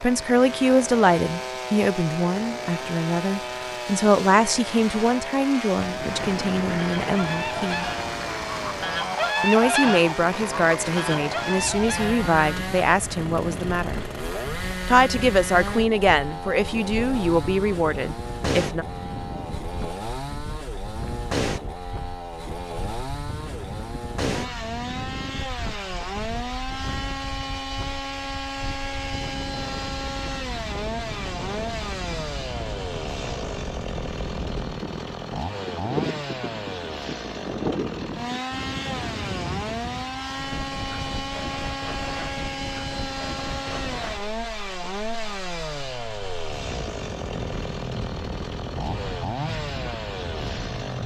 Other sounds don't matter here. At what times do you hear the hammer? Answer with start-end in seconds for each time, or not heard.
not heard.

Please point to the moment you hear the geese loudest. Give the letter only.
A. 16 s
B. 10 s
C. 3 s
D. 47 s
B.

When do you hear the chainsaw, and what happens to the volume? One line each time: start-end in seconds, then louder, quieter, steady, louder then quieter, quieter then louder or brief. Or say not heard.
0.0-51.0 steady.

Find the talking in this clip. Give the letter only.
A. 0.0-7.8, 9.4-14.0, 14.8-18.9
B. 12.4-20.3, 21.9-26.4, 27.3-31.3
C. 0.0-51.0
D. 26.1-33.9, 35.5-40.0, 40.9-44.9
A.